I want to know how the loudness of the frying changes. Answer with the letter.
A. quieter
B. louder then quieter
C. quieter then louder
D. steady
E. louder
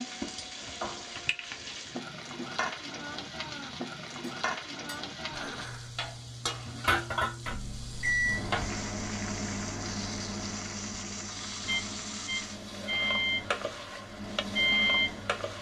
D.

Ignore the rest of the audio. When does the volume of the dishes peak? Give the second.
7 s.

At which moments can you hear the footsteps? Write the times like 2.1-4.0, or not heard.
not heard.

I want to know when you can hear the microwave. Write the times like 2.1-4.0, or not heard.
7.5-15.5.